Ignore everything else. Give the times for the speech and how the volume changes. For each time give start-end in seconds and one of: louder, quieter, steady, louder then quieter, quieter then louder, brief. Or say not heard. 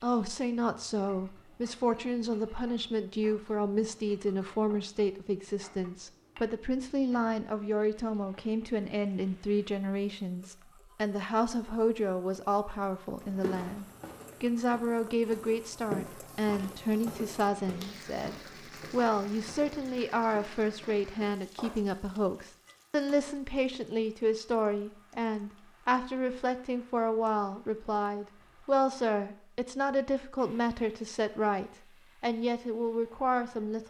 0.0-33.8 steady.